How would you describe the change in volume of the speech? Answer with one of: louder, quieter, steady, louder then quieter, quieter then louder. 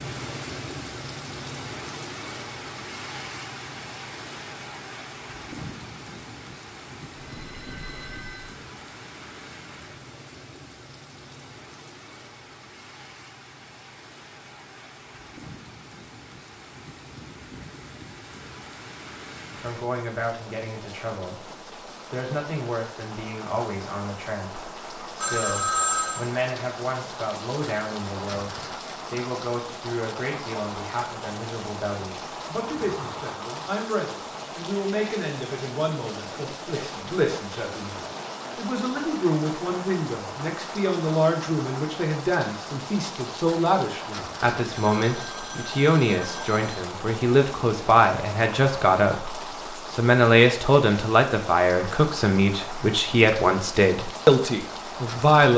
louder.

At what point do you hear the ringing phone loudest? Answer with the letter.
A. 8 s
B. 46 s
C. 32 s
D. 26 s
D.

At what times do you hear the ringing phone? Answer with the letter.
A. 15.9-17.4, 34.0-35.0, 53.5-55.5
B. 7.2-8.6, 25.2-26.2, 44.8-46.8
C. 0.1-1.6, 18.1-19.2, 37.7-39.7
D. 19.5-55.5
B.